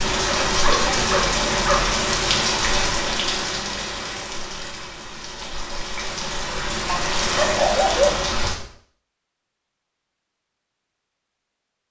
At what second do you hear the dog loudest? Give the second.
8 s.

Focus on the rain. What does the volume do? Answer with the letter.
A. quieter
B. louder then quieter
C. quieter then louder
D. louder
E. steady
C.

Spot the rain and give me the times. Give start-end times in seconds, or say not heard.
0.0-8.6.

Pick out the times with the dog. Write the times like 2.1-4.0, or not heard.
0.2-1.9, 6.5-8.7.